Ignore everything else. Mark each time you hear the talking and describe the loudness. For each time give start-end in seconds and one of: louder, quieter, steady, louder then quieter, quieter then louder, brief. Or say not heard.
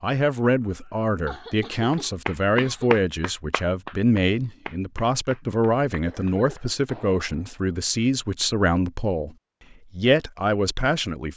0.0-9.3 steady
9.9-11.3 brief.